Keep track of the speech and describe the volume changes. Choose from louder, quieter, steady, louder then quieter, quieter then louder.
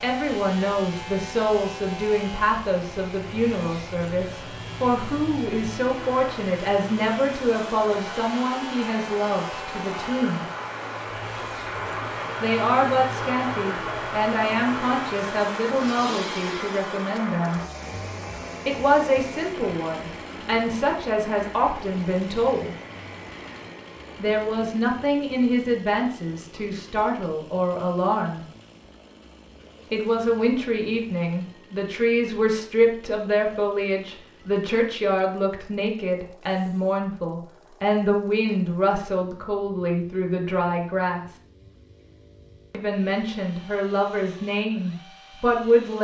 steady.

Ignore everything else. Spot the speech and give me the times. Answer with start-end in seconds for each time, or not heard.
0.0-10.4, 12.4-17.6, 18.6-22.8, 24.1-28.4, 29.9-41.2, 42.7-45.9.